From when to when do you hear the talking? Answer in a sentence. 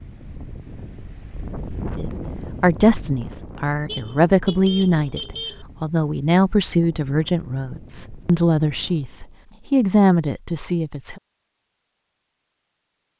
You can hear the talking from 1.9 to 11.2 s.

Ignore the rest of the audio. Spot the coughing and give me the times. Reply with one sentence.
You can't hear the coughing here.